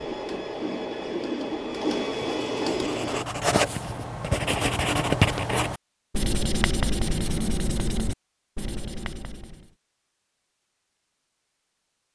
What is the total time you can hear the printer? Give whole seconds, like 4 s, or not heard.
3 s.